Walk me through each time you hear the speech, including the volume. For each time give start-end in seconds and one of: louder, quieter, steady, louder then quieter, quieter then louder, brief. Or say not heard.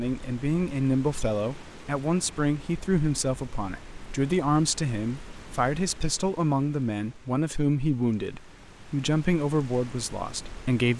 0.0-10.9 steady.